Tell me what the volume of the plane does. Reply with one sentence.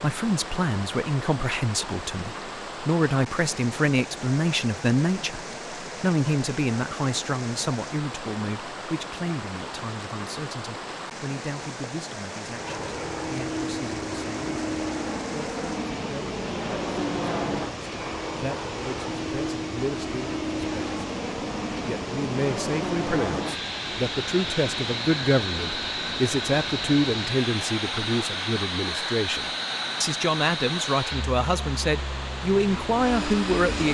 The loudness of the plane stays about the same.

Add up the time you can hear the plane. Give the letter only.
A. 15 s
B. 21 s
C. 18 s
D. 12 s
B.